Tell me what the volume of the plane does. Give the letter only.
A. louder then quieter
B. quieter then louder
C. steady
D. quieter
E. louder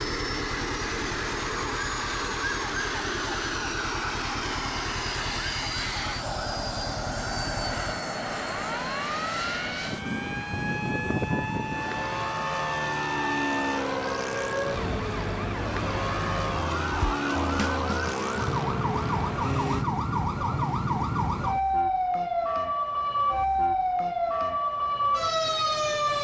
C.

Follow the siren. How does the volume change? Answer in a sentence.
The volume of the siren goes up.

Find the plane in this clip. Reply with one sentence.
The plane can be heard from 0.0 to 19.9 s.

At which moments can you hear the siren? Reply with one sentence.
The siren can be heard from 0.0 to 26.1 s.